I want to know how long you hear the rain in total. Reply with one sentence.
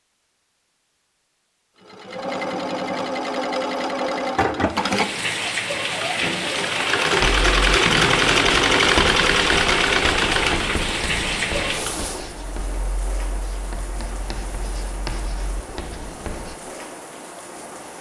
You can hear the rain for 13 seconds altogether.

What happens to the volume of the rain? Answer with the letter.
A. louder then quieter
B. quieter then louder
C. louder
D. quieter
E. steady
D.